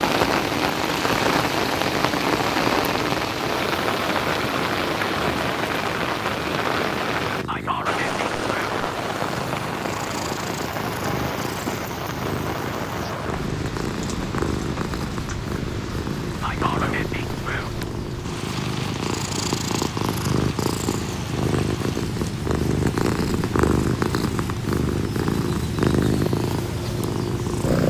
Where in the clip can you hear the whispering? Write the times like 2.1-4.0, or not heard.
7.5-8.8, 16.4-17.9.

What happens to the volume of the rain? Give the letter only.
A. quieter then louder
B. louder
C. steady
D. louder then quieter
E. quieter
E.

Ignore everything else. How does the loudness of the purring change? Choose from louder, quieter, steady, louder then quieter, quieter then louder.
louder.